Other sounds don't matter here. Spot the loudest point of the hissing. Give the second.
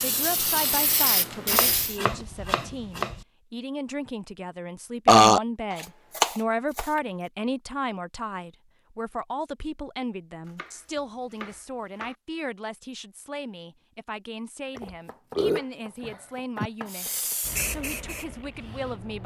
1 s.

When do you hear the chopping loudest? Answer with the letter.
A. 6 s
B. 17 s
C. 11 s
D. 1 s
A.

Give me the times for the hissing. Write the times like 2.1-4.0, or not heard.
0.0-2.0, 16.9-19.2.